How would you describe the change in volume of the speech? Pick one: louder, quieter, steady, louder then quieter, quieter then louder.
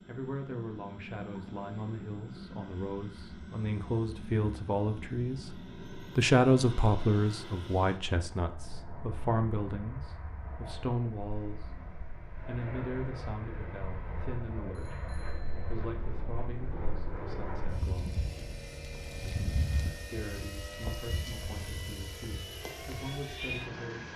louder then quieter.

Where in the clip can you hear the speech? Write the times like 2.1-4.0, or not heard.
0.1-11.8, 12.4-18.2, 20.1-24.1.